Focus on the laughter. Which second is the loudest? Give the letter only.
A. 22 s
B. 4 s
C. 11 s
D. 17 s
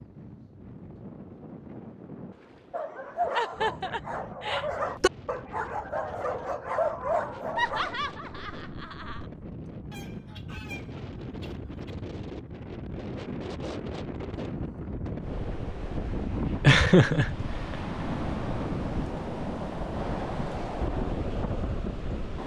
D.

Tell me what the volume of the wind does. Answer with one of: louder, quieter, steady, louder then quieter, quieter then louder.
louder.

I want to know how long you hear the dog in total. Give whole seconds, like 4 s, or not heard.
5 s.